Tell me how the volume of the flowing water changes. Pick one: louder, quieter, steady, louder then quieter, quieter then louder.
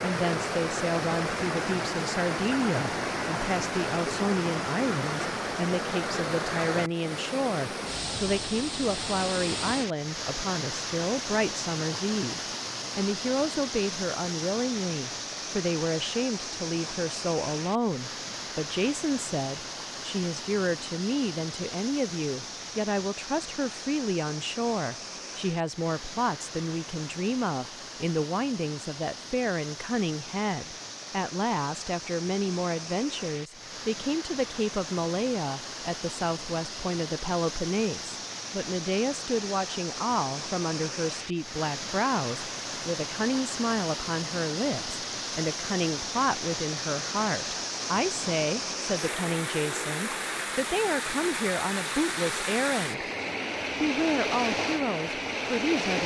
quieter then louder.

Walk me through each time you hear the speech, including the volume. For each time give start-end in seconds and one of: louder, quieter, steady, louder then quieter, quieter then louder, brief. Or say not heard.
0.0-53.0 steady
53.8-56.0 brief.